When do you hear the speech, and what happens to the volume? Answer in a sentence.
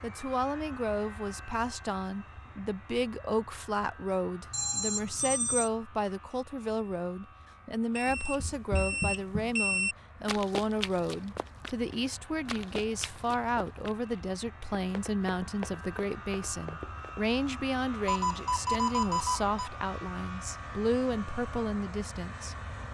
You can hear the speech from 0.0 to 22.6 s, at a steady volume.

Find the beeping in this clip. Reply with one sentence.
The beeping can be heard from 4.5 to 5.7 s, from 8.0 to 9.9 s and from 18.1 to 19.7 s.